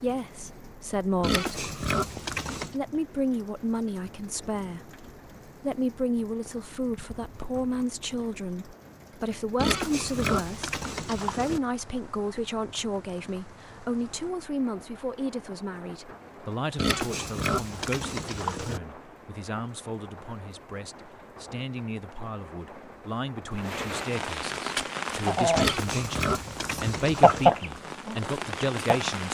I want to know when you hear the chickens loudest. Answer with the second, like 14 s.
27 s.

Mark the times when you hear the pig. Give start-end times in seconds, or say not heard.
1.2-2.8, 9.6-11.6, 16.8-18.8, 25.6-27.5.